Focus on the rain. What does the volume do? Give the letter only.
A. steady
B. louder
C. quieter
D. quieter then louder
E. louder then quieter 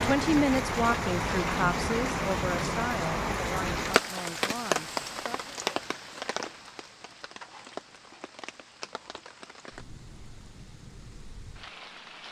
C.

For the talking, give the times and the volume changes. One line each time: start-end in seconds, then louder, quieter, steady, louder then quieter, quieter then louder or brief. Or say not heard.
0.0-5.5 quieter.